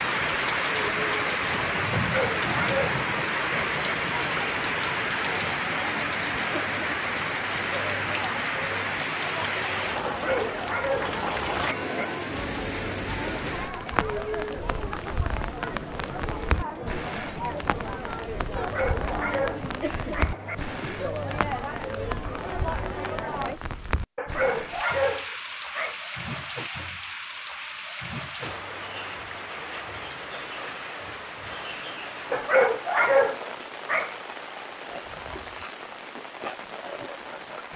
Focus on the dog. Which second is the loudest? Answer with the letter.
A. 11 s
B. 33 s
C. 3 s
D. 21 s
B.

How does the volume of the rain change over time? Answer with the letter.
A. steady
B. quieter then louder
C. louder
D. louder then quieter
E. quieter
E.